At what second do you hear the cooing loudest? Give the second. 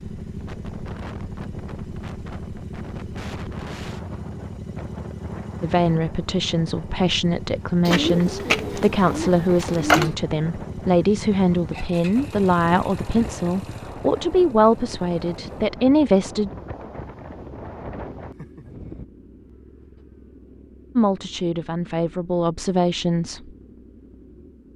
10 s.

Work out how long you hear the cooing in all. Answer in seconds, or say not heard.
2 s.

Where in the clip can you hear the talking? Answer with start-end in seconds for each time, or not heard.
5.6-16.5, 20.9-23.5.